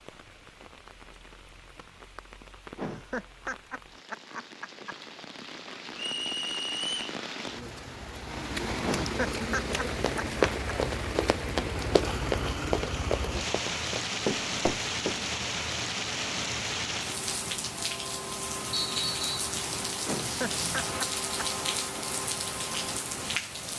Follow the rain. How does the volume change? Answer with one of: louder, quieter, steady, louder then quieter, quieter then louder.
louder.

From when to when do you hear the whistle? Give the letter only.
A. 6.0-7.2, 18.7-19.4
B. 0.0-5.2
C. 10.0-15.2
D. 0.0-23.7
A.